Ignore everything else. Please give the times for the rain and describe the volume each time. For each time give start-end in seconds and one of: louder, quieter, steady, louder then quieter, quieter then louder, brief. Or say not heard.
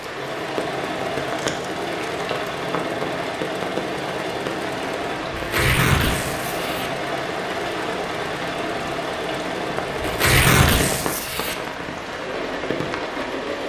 0.0-13.6 steady.